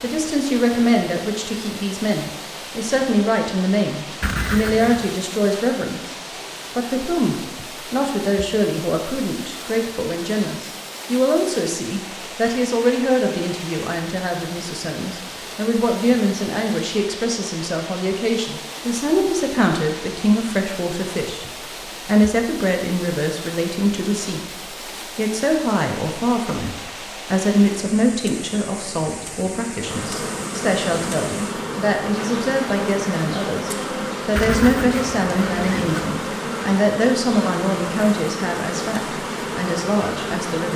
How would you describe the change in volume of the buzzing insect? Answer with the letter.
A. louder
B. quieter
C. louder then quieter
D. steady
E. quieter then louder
D.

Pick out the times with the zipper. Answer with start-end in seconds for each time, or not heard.
4.2-5.2, 34.4-36.0.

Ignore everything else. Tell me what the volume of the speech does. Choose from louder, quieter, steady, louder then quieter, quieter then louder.
steady.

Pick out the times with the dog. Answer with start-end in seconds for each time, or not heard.
not heard.